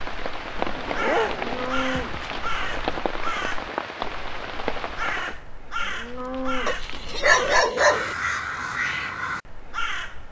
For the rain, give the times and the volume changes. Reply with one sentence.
The rain can be heard from 0.0 to 5.4 s, at a steady volume.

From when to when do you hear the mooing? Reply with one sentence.
The mooing can be heard from 1.4 to 3.0 s and from 5.8 to 7.6 s.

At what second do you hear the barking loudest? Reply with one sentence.
The loudest moment of the barking is at 7 seconds.